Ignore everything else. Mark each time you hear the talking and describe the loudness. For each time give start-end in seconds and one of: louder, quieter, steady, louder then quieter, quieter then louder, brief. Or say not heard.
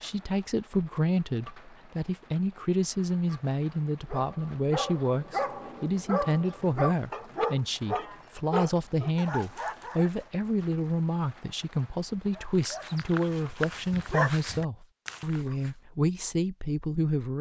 0.0-17.3 steady.